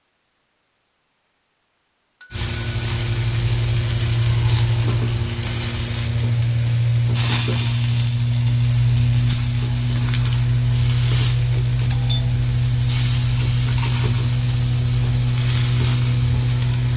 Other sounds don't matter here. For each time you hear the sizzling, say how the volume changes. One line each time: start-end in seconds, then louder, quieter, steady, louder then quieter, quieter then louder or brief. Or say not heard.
2.3-16.9 steady.